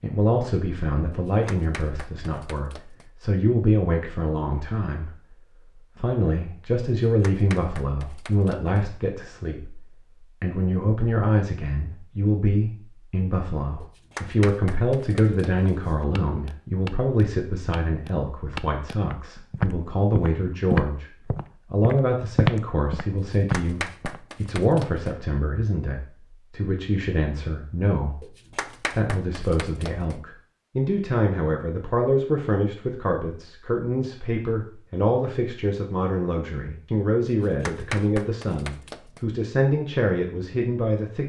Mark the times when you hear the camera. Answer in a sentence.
You can't hear the camera here.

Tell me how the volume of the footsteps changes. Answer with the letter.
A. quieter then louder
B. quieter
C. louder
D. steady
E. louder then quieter
C.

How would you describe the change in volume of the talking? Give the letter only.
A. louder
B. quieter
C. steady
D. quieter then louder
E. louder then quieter
C.